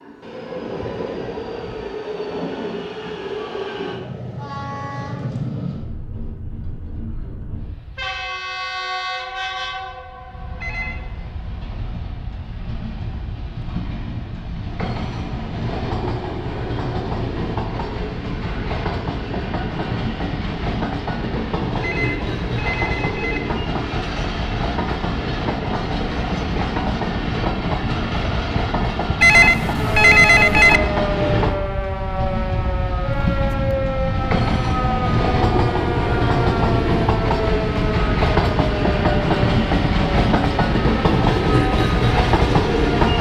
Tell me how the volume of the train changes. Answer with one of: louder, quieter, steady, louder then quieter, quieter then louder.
louder.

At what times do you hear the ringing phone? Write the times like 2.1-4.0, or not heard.
10.6-11.2, 21.8-23.4, 29.2-30.8.